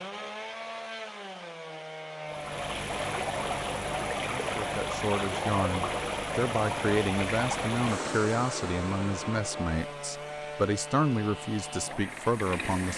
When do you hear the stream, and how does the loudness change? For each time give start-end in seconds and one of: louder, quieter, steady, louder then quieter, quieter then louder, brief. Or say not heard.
2.2-12.9 quieter.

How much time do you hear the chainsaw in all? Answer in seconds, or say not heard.
13 s.